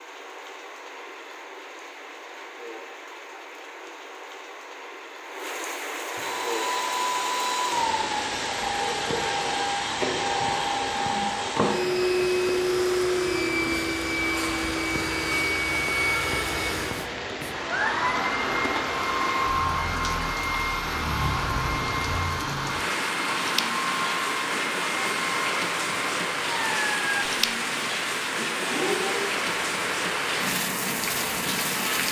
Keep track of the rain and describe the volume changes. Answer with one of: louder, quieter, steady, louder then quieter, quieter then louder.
louder.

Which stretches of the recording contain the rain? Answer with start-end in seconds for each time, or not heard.
0.0-32.0.